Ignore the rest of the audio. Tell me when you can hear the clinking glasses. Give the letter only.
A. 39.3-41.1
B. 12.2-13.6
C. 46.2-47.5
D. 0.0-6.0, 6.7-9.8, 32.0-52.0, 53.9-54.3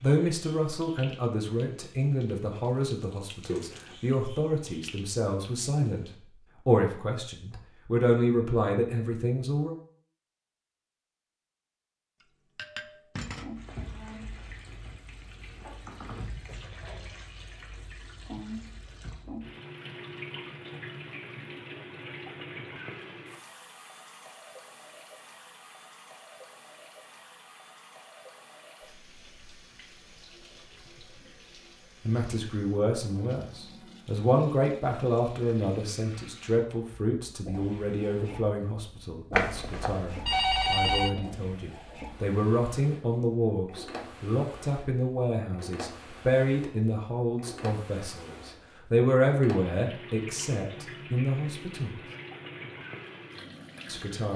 B.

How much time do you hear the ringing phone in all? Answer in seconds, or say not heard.
2 s.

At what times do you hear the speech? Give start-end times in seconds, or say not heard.
0.0-6.0, 6.7-9.8, 32.0-52.0, 53.9-54.3.